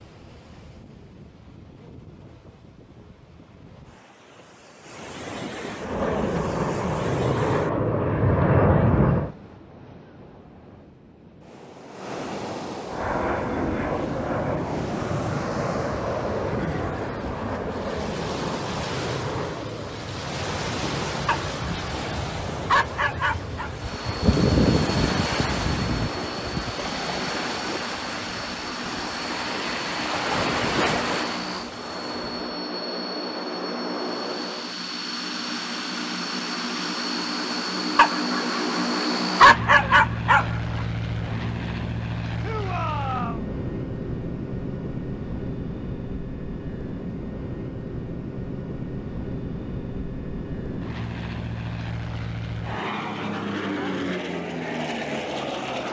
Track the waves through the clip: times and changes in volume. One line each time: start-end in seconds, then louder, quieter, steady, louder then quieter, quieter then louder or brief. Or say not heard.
0.0-32.6 louder.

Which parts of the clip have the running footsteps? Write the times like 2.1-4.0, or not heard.
not heard.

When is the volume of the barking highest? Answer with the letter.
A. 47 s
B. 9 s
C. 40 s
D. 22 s
C.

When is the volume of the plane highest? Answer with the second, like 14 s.
9 s.